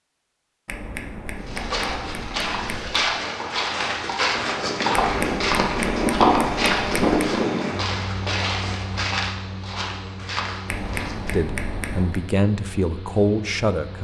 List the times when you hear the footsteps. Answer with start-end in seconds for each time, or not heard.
1.4-11.3.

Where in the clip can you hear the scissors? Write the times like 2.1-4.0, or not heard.
0.7-3.0, 5.0-7.0, 10.7-12.2.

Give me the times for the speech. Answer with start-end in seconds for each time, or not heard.
11.3-14.0.